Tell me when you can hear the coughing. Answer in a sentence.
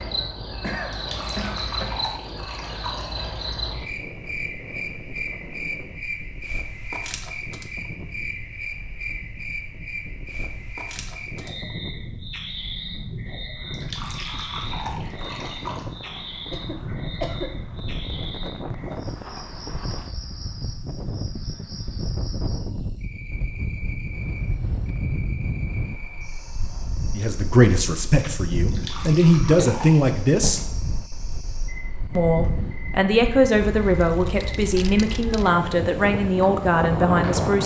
The coughing can be heard from 0.6 to 2.0 s, from 16.5 to 17.6 s and from 29.6 to 30.7 s.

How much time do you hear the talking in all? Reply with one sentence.
You can hear the talking for 9 seconds altogether.